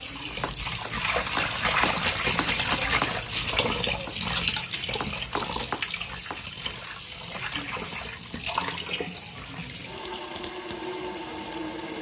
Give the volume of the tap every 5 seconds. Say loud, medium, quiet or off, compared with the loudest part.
loud, medium, medium.